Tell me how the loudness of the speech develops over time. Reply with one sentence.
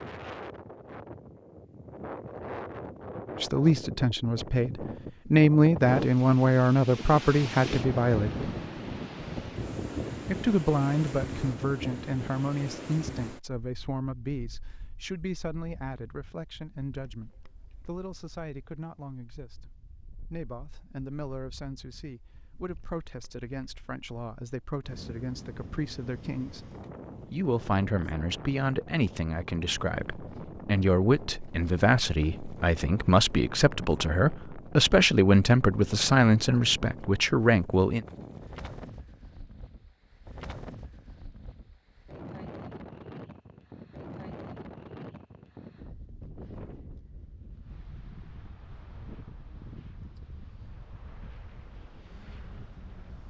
The loudness of the speech goes down, then up.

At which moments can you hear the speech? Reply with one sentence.
You can hear the speech from 3.4 to 8.4 s, from 10.2 to 19.7 s, from 20.3 to 26.7 s and from 27.3 to 38.0 s.